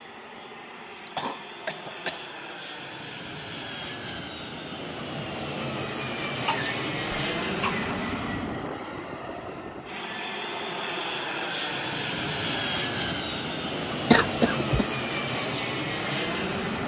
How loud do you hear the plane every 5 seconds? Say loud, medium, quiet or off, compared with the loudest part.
medium, loud, loud, loud.